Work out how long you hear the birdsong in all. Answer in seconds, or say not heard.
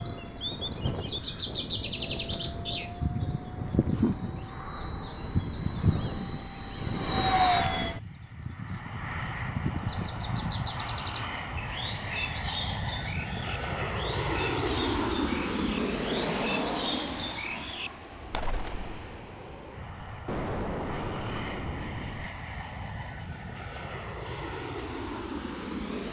19 s.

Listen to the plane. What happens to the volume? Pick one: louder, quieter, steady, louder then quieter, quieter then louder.
louder then quieter.